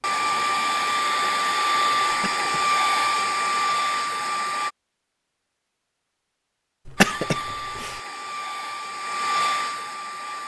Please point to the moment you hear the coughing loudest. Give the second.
7 s.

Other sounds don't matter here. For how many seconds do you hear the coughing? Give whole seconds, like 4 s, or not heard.
2 s.